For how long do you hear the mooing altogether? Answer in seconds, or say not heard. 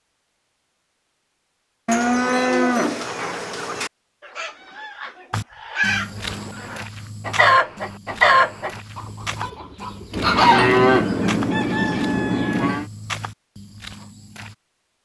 5 s.